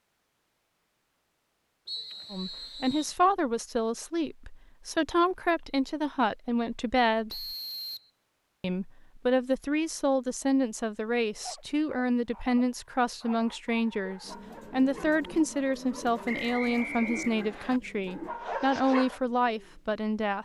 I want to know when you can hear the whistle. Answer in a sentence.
The whistle can be heard from 1.9 to 3.1 s, from 7.3 to 8.1 s and from 16.2 to 17.8 s.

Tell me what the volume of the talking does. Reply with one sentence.
The loudness of the talking stays about the same.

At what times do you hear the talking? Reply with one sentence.
The talking can be heard from 2.3 to 7.5 s and from 8.6 to 20.3 s.